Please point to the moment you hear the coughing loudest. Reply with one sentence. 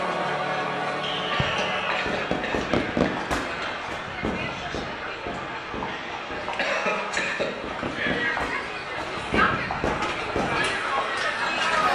The loudest moment of the coughing is at 7 seconds.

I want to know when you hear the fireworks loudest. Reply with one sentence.
The loudest moment of the fireworks is at 3 seconds.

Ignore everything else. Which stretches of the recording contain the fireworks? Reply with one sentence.
The fireworks can be heard from 1.0 to 10.8 s.